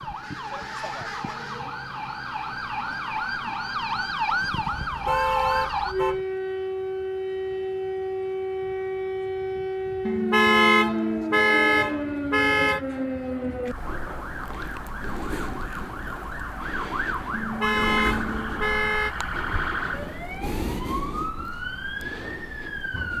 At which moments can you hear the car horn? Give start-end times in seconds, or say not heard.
4.7-6.2, 10.1-12.8, 17.3-19.1.